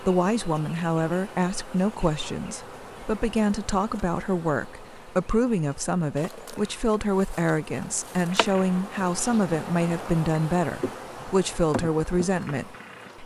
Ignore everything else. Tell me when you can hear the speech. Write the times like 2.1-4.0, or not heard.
0.0-13.2.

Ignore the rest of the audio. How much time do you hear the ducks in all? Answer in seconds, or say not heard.
not heard.